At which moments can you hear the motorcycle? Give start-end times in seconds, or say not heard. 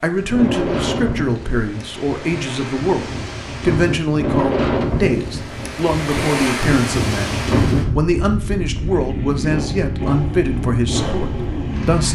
8.7-12.1.